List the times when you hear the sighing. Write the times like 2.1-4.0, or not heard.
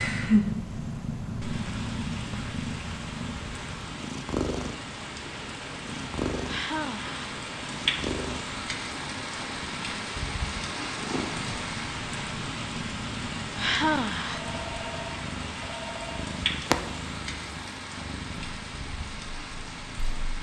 6.5-7.2, 13.6-14.4.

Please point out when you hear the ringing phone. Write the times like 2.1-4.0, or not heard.
14.2-16.2.